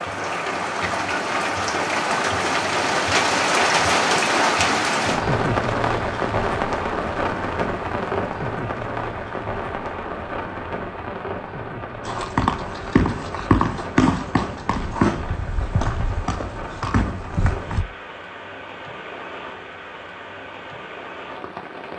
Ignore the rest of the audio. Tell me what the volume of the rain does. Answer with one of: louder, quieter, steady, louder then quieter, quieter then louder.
quieter.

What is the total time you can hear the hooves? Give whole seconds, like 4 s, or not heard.
6 s.